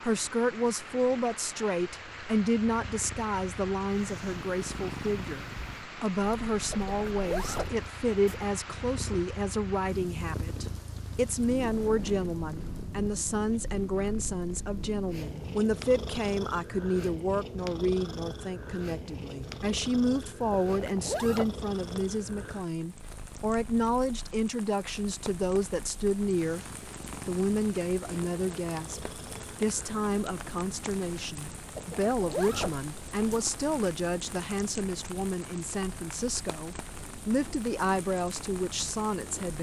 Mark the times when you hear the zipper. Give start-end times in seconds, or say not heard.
6.7-8.4, 20.8-21.6, 31.8-33.5.